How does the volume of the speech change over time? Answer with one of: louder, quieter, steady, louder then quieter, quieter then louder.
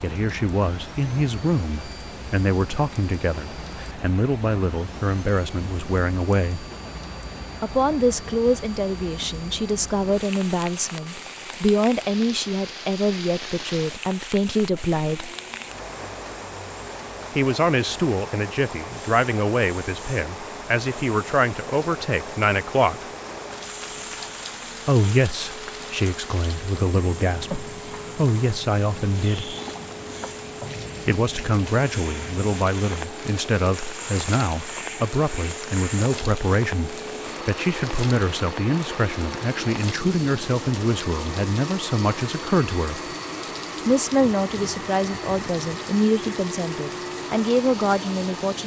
steady.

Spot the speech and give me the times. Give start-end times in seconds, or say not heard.
0.0-6.7, 7.6-15.3, 17.4-23.1, 24.9-29.6, 31.1-43.0, 43.9-48.6.